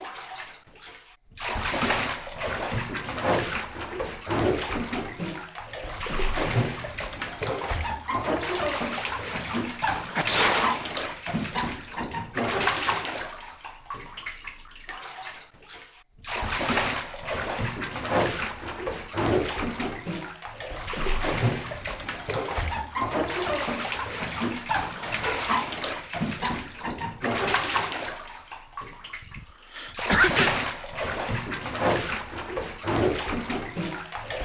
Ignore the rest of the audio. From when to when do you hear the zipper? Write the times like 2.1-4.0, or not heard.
not heard.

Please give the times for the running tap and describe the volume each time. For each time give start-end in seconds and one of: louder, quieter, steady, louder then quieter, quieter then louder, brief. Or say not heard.
0.0-34.4 steady.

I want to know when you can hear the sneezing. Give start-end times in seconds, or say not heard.
10.2-10.8, 29.3-30.6.